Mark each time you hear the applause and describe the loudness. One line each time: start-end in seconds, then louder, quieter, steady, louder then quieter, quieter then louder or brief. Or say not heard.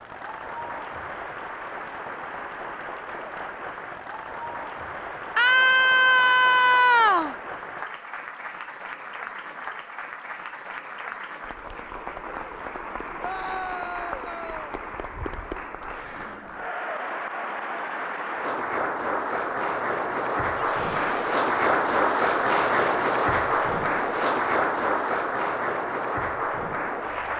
0.0-27.3 louder.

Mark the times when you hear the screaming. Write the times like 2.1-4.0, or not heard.
5.3-7.3, 13.2-14.8, 20.6-21.3.